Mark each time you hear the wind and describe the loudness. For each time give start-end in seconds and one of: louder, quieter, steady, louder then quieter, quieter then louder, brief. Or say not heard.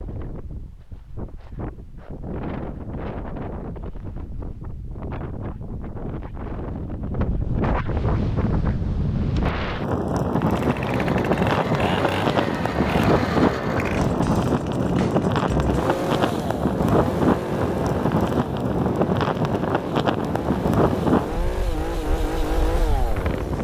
0.0-23.6 louder.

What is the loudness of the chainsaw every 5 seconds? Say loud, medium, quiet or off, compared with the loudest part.
off, off, loud, loud, loud.